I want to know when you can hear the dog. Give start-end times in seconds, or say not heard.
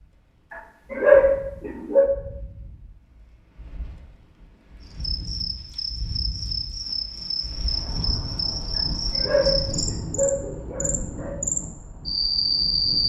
0.5-2.1, 8.8-11.3.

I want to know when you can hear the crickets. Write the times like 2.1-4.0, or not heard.
4.8-13.0.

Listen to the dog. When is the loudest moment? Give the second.
1 s.